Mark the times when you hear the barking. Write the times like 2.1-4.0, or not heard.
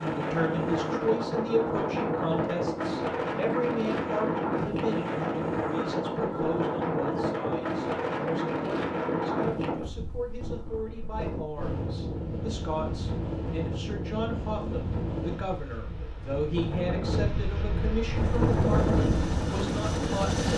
not heard.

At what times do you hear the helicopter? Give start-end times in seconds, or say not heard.
18.1-20.5.